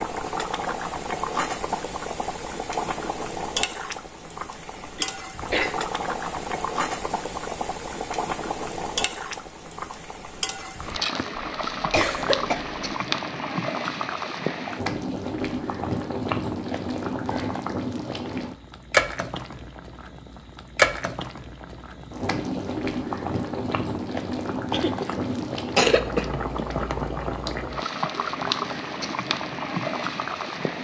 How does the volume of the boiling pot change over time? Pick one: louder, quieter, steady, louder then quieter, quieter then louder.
steady.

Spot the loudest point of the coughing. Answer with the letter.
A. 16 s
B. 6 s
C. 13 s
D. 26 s
D.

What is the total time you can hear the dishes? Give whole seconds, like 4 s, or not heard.
not heard.